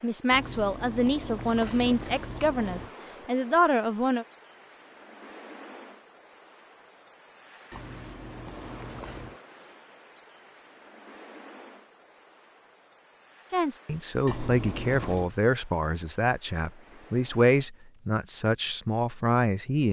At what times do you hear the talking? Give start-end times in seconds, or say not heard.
0.0-4.2, 13.5-19.8.